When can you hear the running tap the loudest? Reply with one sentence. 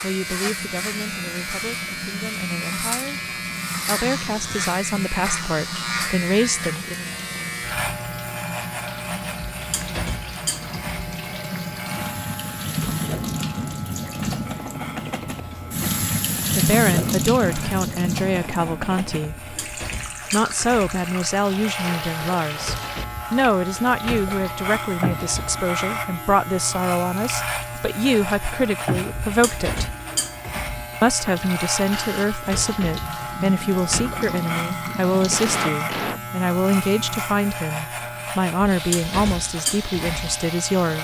The volume of the running tap peaks at 17 seconds.